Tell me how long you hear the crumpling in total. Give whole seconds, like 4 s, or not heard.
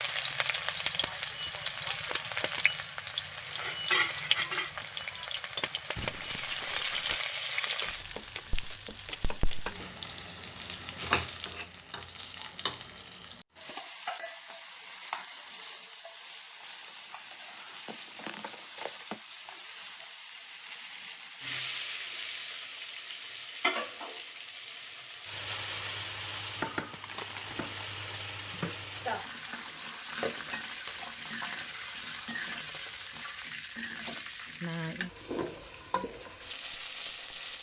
5 s.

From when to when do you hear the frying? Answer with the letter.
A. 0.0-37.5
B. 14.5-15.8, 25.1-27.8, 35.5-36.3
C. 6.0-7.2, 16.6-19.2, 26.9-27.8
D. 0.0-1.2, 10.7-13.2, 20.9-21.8
A.